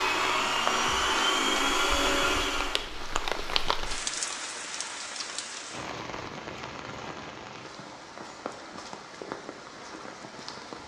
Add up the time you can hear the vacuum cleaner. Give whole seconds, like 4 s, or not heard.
3 s.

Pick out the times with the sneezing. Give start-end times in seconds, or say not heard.
not heard.